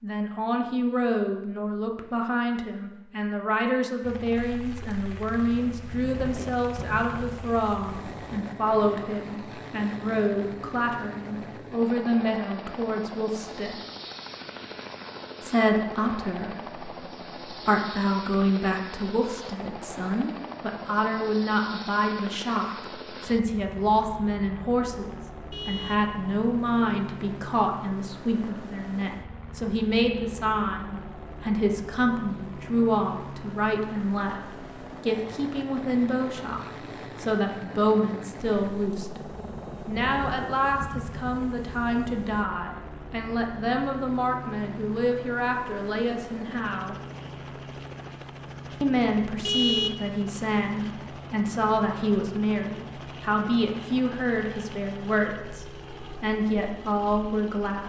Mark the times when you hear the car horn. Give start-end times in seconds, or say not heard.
25.5-26.1, 49.5-50.4.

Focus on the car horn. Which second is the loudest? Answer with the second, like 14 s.
50 s.